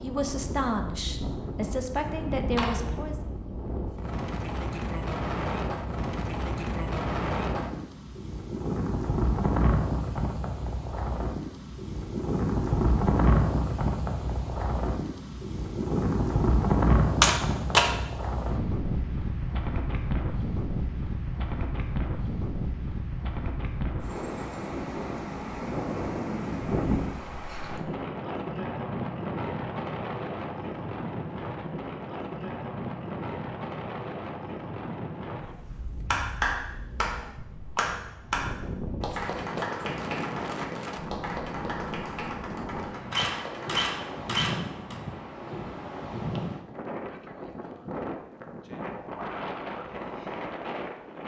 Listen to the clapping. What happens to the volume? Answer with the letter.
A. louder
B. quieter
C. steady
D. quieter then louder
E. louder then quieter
B.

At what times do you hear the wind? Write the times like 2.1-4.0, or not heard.
0.0-51.2.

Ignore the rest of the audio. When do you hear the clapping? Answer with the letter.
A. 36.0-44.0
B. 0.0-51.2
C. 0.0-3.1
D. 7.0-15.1
A.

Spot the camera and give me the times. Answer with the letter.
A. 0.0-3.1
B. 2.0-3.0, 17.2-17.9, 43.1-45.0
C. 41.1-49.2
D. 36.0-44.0
B.